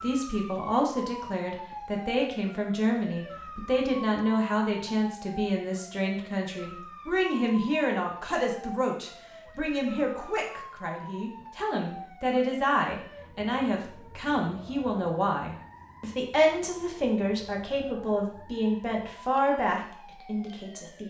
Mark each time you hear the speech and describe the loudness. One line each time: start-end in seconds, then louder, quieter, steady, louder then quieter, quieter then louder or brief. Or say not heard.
0.0-21.0 steady.